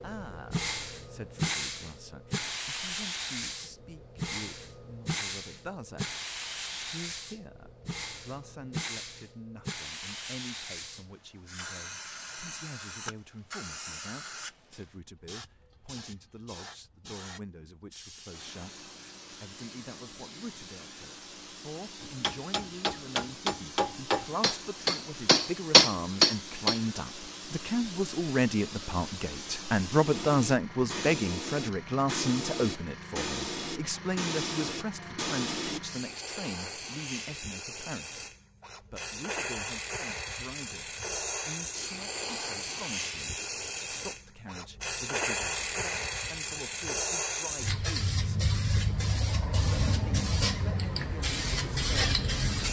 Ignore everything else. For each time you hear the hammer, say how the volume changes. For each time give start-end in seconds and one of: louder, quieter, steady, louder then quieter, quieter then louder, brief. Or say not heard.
22.0-26.9 louder.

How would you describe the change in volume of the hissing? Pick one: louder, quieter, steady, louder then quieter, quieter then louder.
quieter then louder.